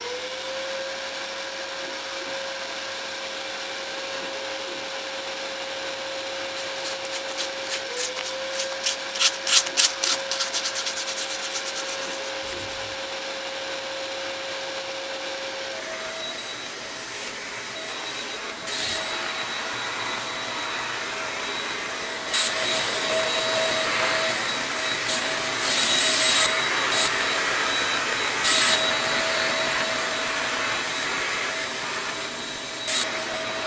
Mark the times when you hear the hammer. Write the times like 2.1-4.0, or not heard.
not heard.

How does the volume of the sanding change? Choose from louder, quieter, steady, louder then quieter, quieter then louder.
louder then quieter.